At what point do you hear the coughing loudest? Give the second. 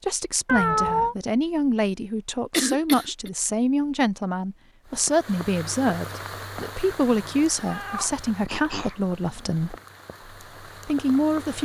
3 s.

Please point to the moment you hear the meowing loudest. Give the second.
1 s.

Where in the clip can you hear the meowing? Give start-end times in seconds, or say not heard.
0.5-1.1, 7.1-8.2.